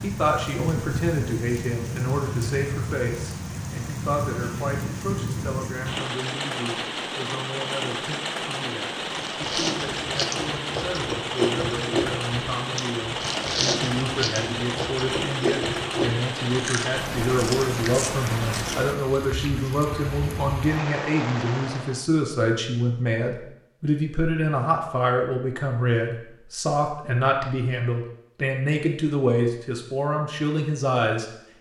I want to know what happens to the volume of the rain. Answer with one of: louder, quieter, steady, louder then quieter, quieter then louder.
steady.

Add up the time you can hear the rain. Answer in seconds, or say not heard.
22 s.